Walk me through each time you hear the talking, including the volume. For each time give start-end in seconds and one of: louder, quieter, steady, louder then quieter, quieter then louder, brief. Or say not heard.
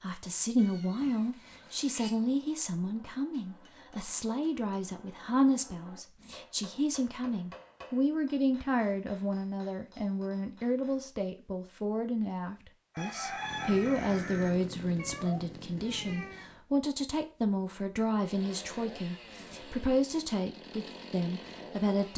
0.0-22.1 steady.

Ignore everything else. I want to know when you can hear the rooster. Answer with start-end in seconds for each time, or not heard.
12.9-14.5.